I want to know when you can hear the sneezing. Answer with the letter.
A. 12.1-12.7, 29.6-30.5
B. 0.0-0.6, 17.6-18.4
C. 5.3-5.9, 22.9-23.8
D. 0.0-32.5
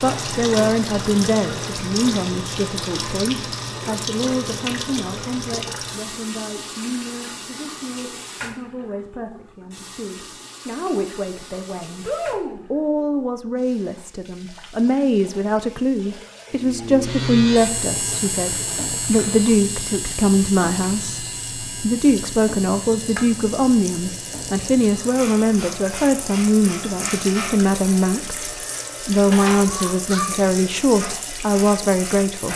A.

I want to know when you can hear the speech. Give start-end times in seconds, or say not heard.
0.0-32.5.